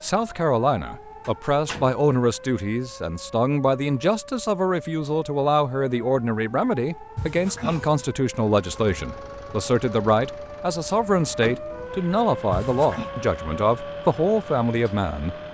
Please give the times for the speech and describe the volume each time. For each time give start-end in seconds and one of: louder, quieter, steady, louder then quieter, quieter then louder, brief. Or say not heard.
0.0-15.3 steady.